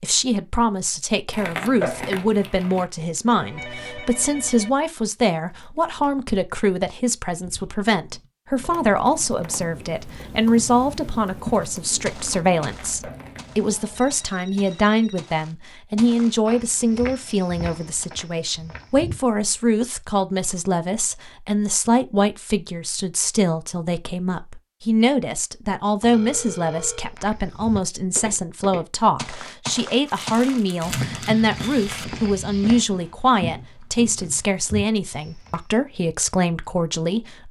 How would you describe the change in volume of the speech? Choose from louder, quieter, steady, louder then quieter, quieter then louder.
steady.